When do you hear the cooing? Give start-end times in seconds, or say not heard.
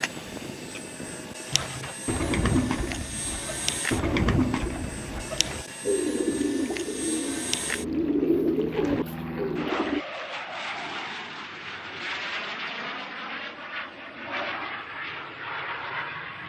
1.5-10.0.